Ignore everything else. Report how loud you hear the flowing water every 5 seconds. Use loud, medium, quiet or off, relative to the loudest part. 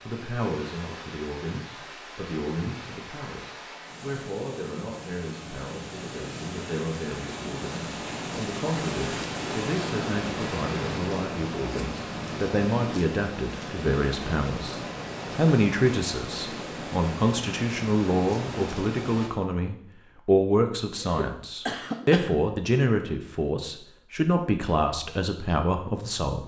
medium, loud, loud, loud, off, off.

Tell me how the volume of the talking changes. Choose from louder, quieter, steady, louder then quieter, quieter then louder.
louder.